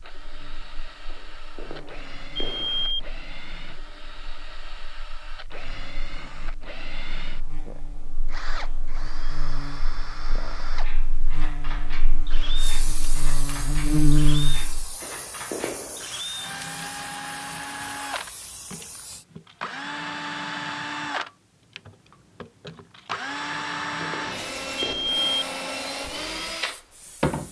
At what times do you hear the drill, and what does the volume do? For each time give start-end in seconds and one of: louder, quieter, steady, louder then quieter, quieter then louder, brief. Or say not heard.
0.0-27.4 louder.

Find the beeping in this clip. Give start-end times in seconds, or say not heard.
1.1-3.0, 15.0-16.1, 23.5-25.4.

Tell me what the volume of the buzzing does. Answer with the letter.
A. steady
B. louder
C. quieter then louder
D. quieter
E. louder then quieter
C.